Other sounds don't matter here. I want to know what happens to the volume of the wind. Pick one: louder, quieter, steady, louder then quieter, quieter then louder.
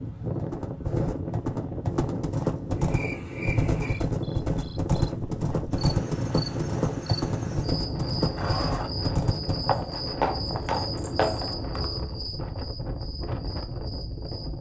steady.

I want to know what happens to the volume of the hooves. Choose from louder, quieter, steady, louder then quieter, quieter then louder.
steady.